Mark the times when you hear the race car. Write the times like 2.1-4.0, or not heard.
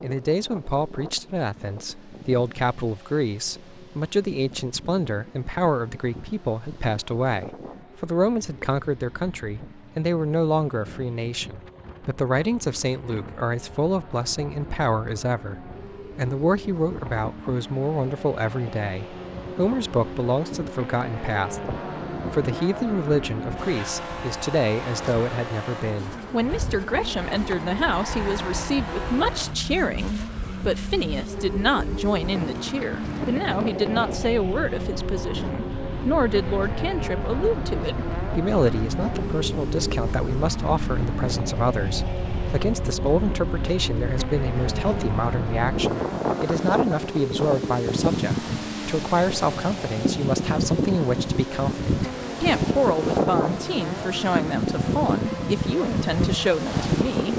0.0-57.3.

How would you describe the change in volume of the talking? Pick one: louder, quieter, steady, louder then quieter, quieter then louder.
steady.